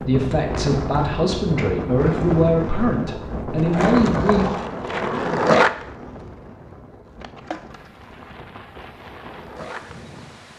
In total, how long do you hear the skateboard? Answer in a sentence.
You can hear the skateboard for 7 seconds altogether.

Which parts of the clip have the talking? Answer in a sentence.
The talking can be heard from 0.0 to 4.5 s.